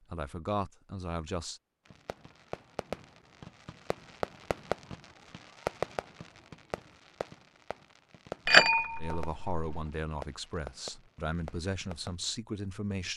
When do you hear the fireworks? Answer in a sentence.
The fireworks can be heard from 1.9 to 12.2 s.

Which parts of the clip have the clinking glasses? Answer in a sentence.
The clinking glasses can be heard from 8.4 to 9.8 s.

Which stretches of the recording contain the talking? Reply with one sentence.
You can hear the talking from 0.1 to 1.6 s and from 9.0 to 13.1 s.